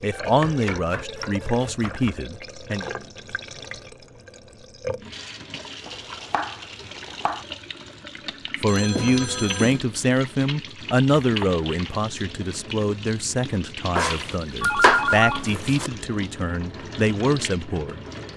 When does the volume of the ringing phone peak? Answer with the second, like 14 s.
15 s.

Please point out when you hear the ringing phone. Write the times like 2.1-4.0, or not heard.
0.1-2.0, 8.7-9.8, 14.6-15.6.